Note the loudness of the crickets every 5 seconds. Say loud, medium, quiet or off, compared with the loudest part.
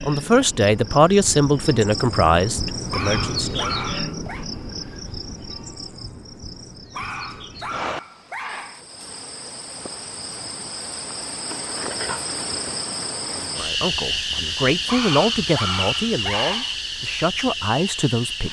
loud, medium, loud, loud.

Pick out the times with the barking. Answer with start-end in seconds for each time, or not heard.
2.9-4.5, 6.9-8.8, 14.8-16.8.